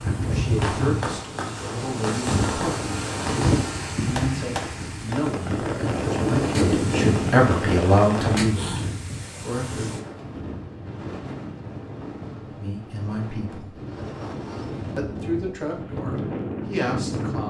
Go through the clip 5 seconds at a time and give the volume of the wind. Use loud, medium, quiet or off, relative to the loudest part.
loud, loud, medium, loud.